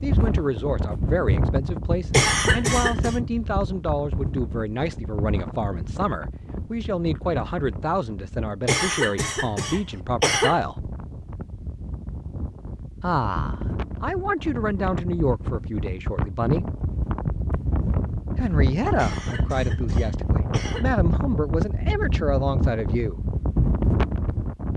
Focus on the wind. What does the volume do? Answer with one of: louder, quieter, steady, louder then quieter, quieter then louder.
quieter then louder.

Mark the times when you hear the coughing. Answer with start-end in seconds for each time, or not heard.
2.1-3.2, 8.7-10.6, 18.9-20.9.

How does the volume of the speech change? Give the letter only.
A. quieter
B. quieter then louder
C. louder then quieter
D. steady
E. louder
D.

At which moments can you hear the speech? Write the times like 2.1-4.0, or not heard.
0.0-10.9, 13.0-16.6, 18.4-23.2.